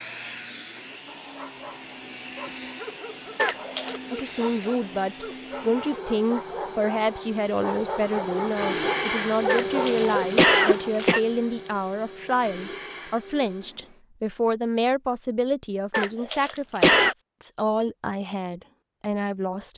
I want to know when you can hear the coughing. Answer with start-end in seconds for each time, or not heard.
3.4-4.0, 9.4-11.2, 15.9-17.1.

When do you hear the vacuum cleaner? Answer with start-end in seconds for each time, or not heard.
0.0-14.0.